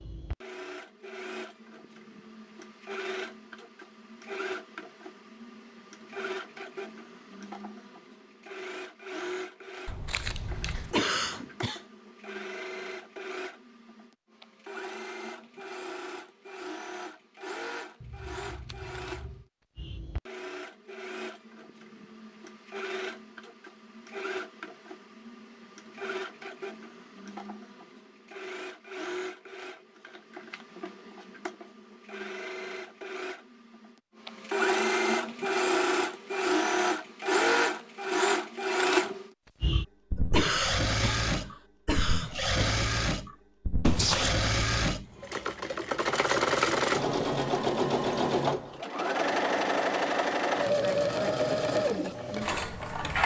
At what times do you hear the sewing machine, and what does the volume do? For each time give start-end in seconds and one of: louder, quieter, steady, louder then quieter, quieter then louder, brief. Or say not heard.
0.0-53.2 louder.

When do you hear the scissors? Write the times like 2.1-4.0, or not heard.
9.8-10.9, 18.0-19.4, 43.8-44.5.